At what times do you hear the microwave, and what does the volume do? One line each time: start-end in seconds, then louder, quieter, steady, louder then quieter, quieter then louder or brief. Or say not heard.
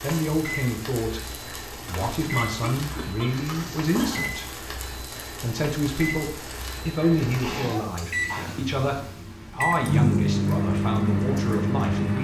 0.0-12.2 louder.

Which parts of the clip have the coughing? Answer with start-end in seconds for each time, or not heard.
1.9-4.3, 7.4-8.6.